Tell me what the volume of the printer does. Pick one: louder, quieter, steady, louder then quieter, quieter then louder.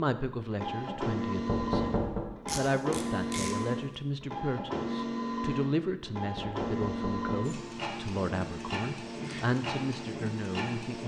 steady.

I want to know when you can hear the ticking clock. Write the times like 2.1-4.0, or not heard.
not heard.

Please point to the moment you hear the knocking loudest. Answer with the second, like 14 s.
2 s.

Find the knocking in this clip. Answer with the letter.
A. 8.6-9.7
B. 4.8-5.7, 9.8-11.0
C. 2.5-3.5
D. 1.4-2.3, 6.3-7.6
D.